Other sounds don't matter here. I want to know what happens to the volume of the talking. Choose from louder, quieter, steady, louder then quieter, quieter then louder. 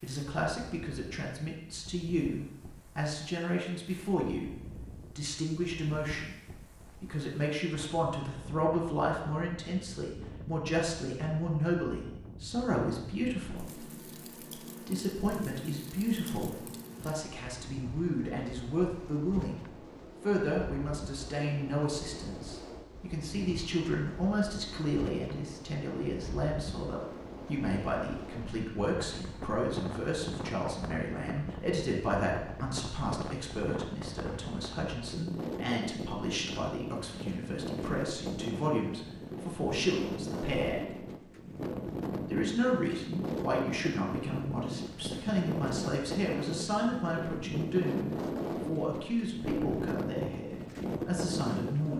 steady.